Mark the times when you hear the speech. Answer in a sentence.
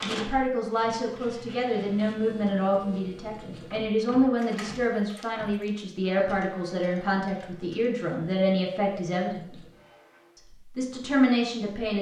You can hear the speech from 0.0 to 9.6 s and from 10.3 to 11.9 s.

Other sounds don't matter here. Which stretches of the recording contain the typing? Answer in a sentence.
The typing can't be heard in this clip.